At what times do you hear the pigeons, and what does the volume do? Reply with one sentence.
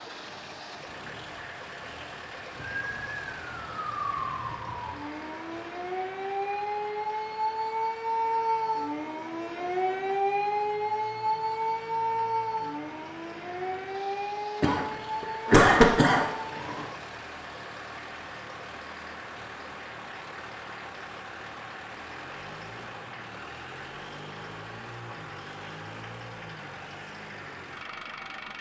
You can't hear the pigeons here.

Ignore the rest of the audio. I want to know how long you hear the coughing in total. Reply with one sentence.
You can hear the coughing for 2 seconds altogether.